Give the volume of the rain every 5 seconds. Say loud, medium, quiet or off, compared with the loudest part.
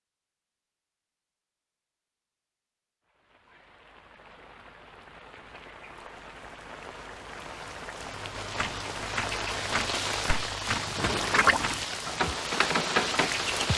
quiet, medium, loud.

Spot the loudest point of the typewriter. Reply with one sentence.
The loudest moment of the typewriter is at 13 seconds.